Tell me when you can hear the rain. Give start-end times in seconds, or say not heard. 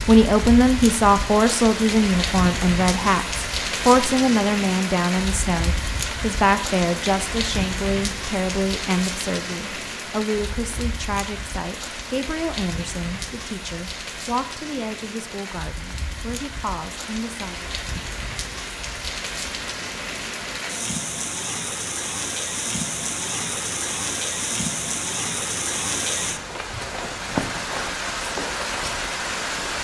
0.0-29.8.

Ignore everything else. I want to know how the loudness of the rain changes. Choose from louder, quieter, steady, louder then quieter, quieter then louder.
quieter then louder.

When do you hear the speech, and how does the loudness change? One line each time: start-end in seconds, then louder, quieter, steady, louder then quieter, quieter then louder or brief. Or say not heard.
0.1-17.6 quieter.